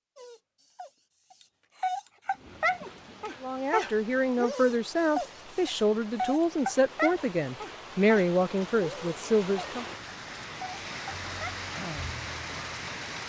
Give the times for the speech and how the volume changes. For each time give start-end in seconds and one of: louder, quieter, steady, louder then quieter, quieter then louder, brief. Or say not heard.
3.4-9.8 steady.